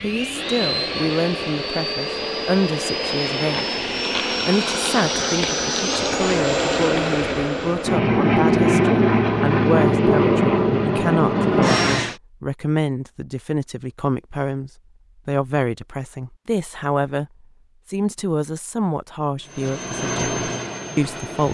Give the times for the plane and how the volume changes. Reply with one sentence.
The plane can be heard from 0.0 to 12.2 s, getting louder; and briefly from 19.4 to 21.5 s.